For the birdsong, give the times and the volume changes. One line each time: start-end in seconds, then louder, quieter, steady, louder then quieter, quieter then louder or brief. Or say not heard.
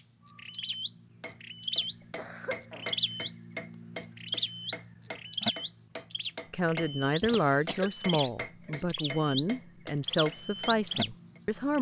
0.0-11.7 steady.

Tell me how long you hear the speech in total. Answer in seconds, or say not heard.
5 s.